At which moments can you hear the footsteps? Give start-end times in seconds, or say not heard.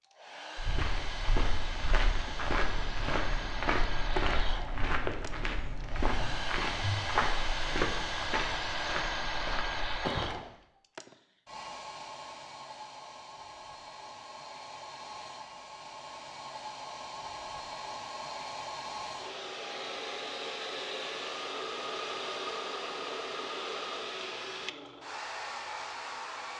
0.6-10.4.